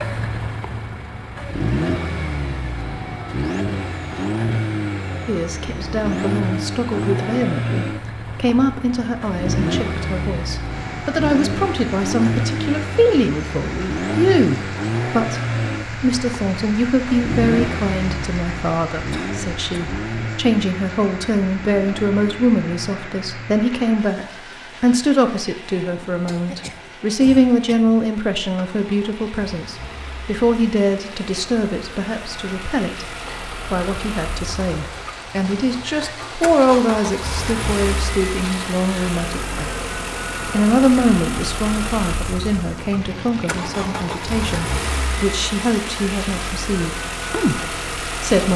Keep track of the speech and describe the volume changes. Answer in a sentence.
The volume of the speech stays about the same.